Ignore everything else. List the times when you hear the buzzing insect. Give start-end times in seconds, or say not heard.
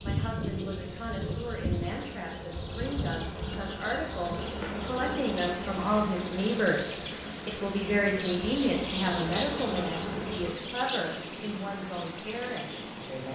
0.0-10.6.